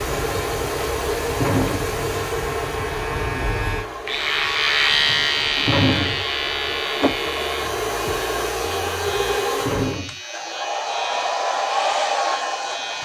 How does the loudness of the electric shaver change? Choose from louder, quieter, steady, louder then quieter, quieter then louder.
louder then quieter.